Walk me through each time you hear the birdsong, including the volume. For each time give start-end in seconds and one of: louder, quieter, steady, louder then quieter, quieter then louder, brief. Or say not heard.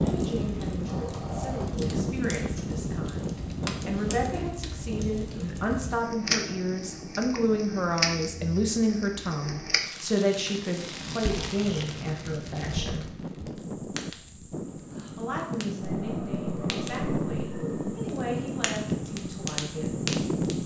not heard.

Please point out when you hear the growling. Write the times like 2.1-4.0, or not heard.
0.8-1.9, 15.8-18.0.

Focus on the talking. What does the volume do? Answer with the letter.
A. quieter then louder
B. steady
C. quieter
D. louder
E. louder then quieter
E.